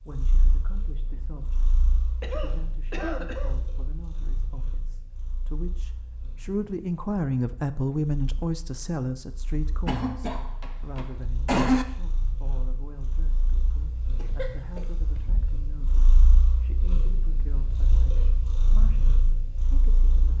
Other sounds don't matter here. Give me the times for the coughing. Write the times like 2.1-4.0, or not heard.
2.2-3.5, 9.8-11.8, 14.2-15.2.